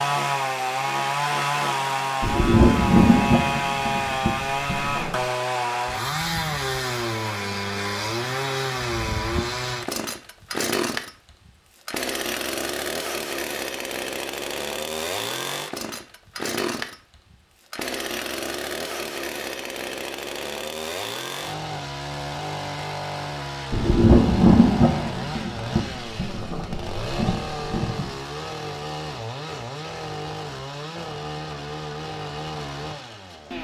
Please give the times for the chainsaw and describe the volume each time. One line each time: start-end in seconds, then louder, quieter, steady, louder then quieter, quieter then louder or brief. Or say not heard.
0.0-33.5 quieter.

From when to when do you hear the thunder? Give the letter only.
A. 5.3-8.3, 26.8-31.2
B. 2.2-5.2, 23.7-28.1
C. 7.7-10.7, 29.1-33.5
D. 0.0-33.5
B.